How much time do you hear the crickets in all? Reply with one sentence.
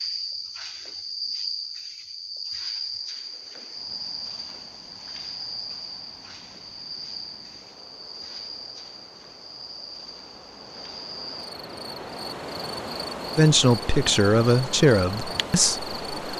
You can hear the crickets for 16 seconds altogether.